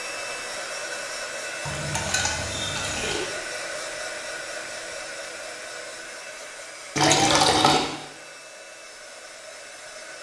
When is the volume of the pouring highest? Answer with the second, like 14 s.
7 s.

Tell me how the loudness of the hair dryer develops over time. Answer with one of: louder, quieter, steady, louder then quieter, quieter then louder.
quieter.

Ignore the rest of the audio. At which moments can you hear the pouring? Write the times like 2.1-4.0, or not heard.
1.6-3.2, 7.0-7.8.